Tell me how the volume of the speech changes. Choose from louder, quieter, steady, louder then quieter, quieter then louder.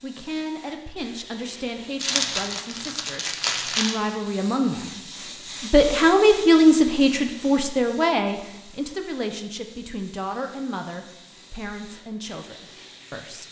louder then quieter.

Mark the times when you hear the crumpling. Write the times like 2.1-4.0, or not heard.
1.9-4.0.